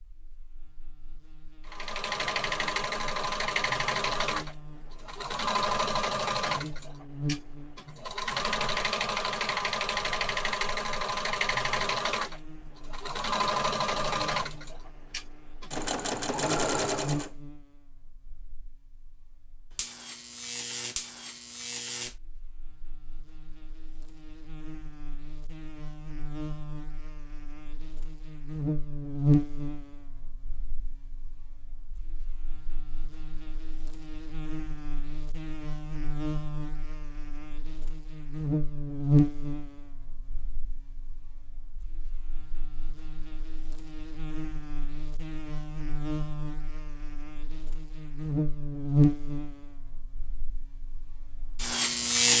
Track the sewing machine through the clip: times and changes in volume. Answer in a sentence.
The sewing machine can be heard from 1.6 to 17.3 s, at a steady volume.